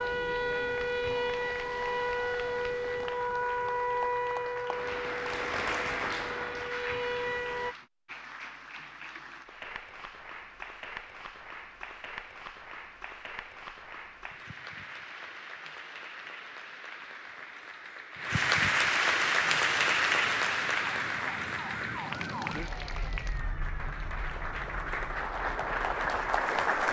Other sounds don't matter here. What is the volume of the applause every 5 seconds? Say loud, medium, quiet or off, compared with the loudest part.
quiet, medium, quiet, loud, loud, loud.